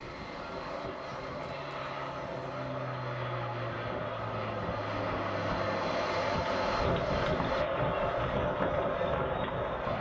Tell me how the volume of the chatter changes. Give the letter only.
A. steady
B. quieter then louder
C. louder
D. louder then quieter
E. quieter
C.